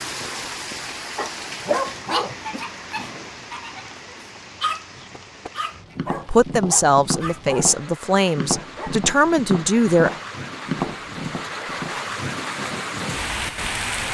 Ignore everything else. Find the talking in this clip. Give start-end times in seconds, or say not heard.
6.2-10.2.